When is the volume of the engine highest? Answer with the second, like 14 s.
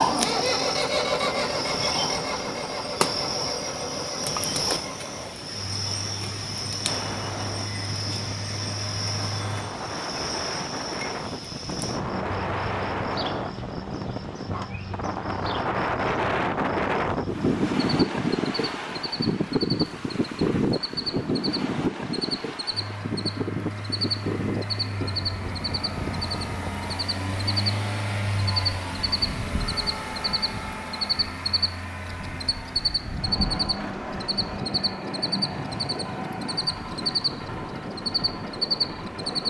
1 s.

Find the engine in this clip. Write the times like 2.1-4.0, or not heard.
0.0-9.7, 22.7-39.4.